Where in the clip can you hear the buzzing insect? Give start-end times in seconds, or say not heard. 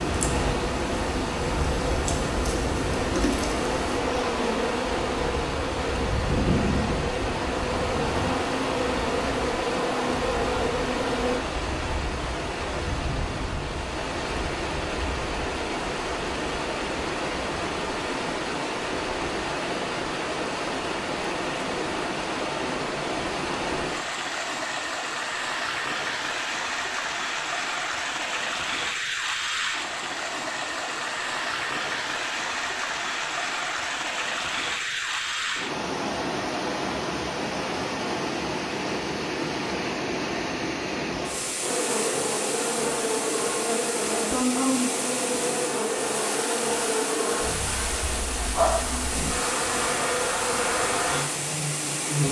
0.0-11.4, 41.6-52.2.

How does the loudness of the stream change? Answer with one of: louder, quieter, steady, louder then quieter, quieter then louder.
steady.